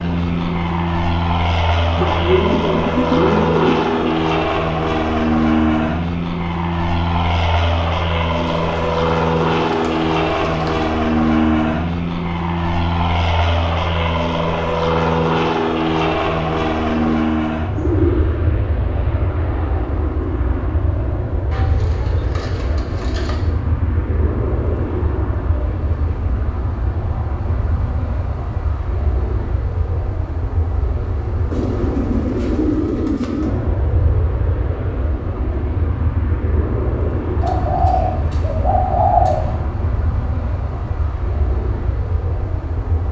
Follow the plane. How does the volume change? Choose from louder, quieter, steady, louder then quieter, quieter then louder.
quieter.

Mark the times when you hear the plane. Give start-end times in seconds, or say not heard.
0.0-43.0.